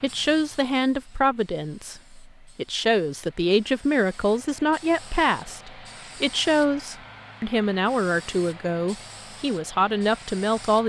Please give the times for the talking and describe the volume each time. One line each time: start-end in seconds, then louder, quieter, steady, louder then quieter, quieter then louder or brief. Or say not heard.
0.0-10.8 steady.